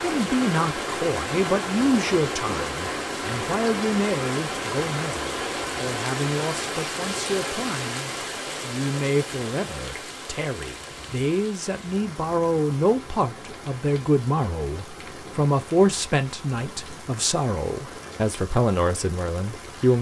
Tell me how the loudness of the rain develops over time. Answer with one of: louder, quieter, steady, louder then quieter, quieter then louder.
quieter.